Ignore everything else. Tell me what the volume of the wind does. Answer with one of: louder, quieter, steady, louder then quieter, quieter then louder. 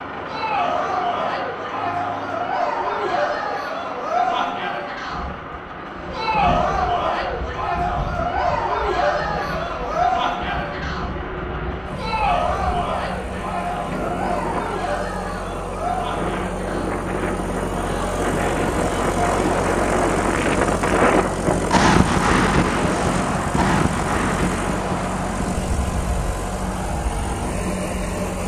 louder then quieter.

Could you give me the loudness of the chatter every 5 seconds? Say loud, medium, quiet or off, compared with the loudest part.
loud, loud, loud, medium, off, off.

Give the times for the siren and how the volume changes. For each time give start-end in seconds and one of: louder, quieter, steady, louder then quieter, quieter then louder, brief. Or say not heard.
not heard.